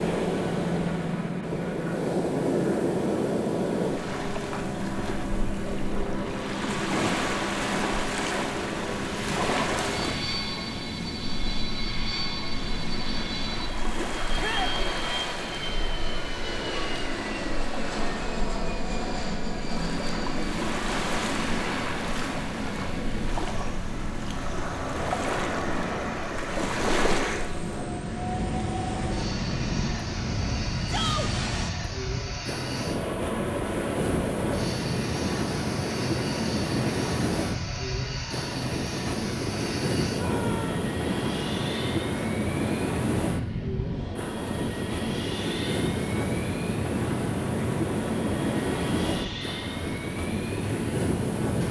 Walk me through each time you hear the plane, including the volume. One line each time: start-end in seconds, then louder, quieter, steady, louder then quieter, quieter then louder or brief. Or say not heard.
0.0-51.6 steady.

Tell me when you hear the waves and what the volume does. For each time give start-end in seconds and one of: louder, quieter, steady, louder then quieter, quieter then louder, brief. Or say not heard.
0.0-51.6 quieter then louder.